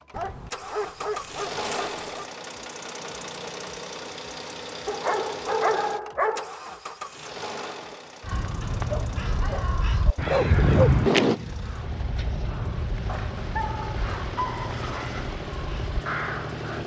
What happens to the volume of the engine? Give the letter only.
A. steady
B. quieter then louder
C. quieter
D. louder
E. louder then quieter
B.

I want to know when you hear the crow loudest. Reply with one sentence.
The volume of the crow peaks at 11 seconds.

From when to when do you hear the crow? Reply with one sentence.
The crow can be heard from 8.2 to 16.8 s.